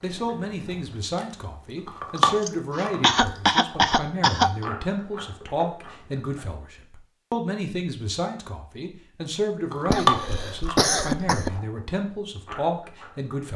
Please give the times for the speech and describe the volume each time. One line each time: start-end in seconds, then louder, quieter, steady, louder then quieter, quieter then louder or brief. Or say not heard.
0.0-13.5 steady.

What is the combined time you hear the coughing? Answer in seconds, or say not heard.
4 s.